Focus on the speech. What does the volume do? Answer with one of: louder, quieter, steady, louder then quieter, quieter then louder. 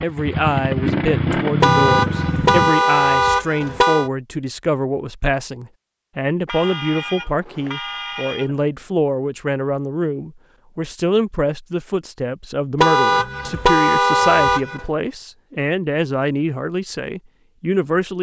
steady.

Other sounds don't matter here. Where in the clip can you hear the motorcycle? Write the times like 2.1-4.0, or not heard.
0.0-2.7.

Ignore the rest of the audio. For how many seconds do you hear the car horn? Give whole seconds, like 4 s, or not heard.
7 s.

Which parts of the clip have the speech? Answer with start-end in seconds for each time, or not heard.
0.0-18.1.